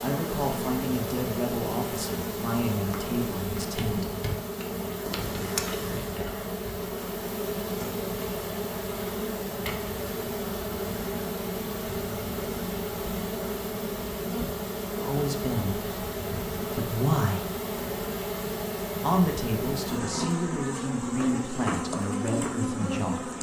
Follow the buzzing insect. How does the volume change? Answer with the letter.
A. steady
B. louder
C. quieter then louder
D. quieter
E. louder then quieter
A.